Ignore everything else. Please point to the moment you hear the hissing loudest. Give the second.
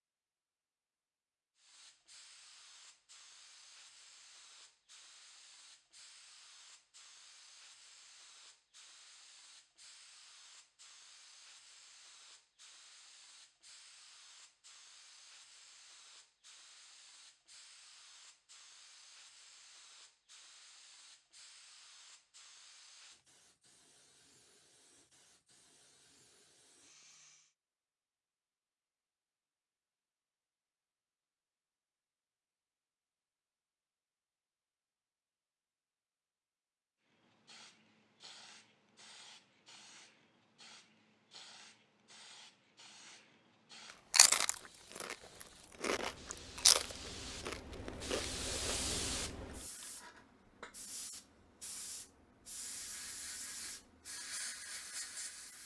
49 s.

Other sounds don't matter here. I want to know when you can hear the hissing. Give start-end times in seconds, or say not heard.
1.6-27.6, 37.0-55.6.